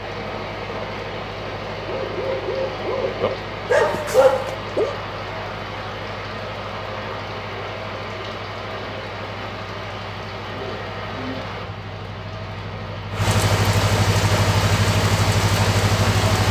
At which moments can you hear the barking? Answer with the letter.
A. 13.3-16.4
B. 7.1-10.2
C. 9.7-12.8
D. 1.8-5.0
D.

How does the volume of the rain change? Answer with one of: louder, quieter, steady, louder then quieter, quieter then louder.
louder.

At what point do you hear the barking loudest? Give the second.
4 s.